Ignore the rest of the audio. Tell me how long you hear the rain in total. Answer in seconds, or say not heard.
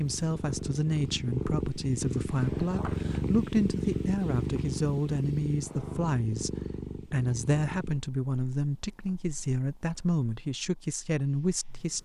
not heard.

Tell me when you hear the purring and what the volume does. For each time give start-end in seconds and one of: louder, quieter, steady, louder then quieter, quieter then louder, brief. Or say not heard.
0.0-12.0 quieter.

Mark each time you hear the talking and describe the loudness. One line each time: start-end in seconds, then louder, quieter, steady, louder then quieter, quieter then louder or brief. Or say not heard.
0.0-12.0 steady.